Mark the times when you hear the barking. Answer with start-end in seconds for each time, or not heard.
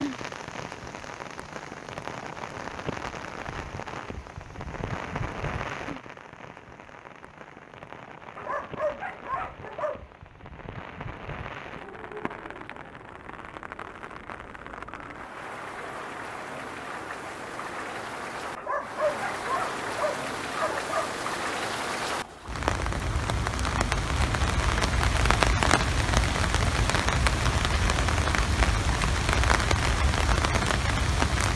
8.3-10.1, 18.6-21.1.